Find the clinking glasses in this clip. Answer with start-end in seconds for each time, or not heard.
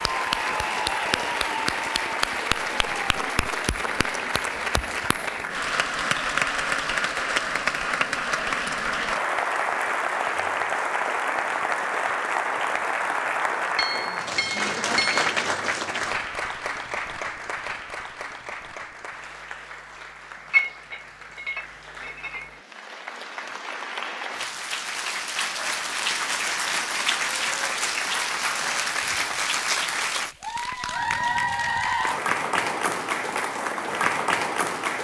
13.8-15.3, 20.5-22.6.